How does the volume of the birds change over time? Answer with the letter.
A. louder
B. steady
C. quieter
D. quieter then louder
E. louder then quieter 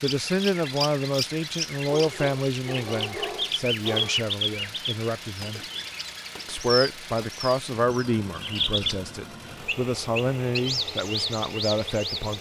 B.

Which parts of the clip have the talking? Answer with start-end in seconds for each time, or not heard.
0.0-5.6, 6.5-12.3.